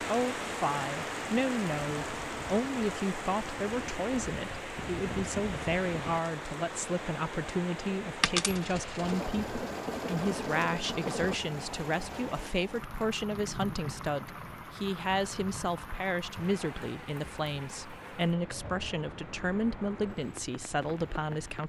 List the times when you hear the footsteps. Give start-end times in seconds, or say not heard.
not heard.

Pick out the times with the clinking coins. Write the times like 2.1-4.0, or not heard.
8.2-9.2.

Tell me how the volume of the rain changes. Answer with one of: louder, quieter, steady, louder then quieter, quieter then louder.
quieter.